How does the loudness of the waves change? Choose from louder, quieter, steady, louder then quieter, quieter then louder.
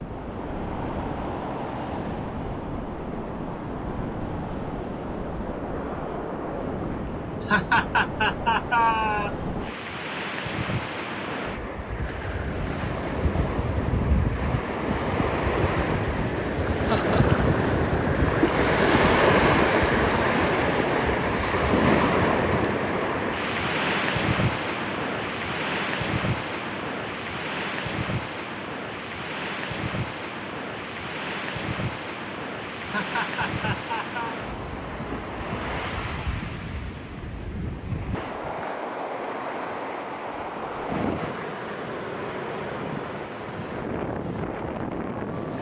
louder then quieter.